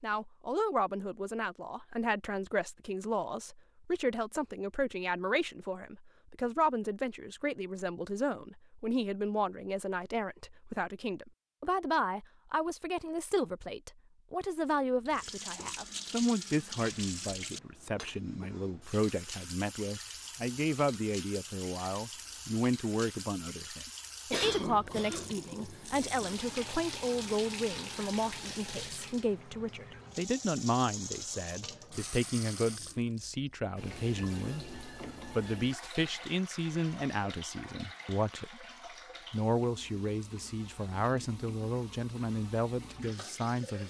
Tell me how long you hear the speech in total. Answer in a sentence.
You can hear the speech for 43 seconds altogether.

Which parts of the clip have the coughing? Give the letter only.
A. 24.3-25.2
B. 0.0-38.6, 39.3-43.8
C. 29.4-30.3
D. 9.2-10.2
A.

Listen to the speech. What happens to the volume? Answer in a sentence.
The loudness of the speech stays about the same.